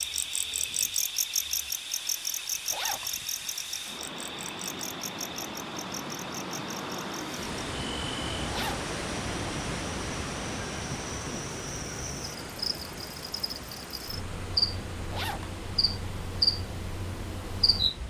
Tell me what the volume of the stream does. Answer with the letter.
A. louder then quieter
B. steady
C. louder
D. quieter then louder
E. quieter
A.